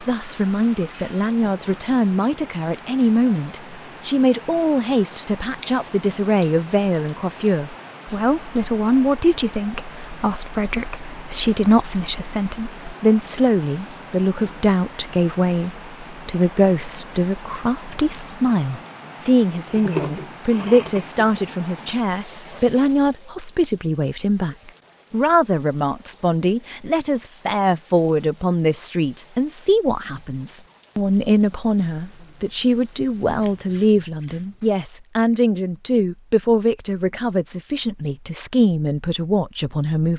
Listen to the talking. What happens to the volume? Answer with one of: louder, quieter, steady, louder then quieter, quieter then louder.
steady.